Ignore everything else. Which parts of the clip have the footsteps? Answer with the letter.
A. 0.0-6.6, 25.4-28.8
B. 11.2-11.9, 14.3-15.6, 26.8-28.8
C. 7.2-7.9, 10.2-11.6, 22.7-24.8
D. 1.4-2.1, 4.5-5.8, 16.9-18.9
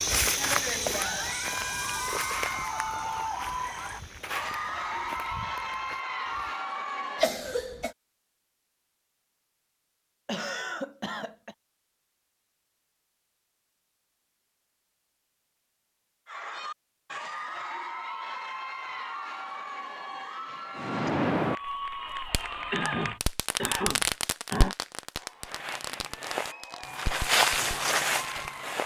A.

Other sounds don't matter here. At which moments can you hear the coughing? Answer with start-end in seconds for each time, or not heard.
7.2-7.9, 10.2-11.6, 22.7-24.8.